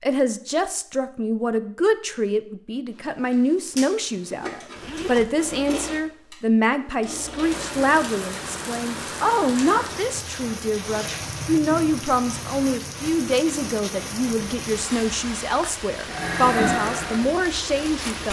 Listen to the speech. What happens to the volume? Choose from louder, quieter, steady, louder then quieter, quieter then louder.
steady.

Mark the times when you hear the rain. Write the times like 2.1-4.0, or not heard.
7.5-18.2.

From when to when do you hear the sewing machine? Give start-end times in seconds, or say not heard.
3.3-8.0, 16.0-18.2.